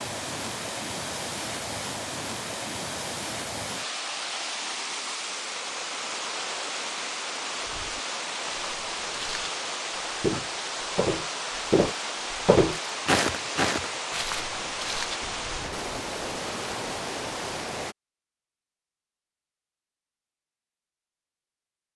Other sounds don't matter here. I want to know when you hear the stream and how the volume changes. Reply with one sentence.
The stream can be heard from 0.0 to 17.9 s, at a steady volume.